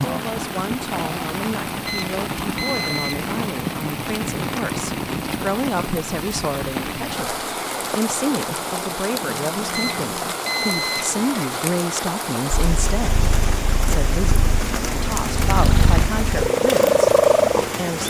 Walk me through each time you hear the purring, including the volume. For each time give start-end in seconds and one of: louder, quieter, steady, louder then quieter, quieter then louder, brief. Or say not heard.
12.5-17.8 louder.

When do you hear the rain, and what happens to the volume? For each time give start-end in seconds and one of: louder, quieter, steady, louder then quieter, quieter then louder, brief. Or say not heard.
0.0-18.0 steady.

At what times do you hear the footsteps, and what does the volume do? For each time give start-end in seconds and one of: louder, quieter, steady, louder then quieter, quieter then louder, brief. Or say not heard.
not heard.